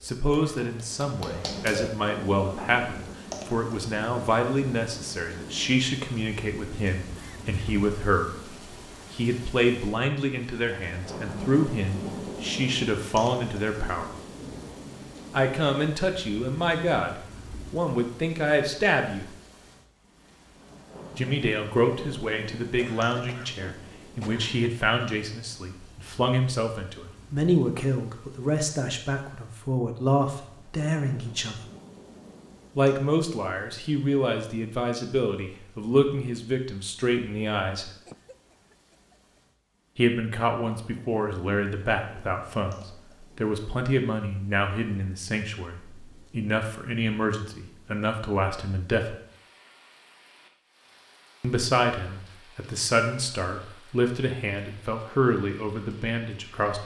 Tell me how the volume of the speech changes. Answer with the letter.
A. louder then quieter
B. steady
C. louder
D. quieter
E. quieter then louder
B.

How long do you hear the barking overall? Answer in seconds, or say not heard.
2 s.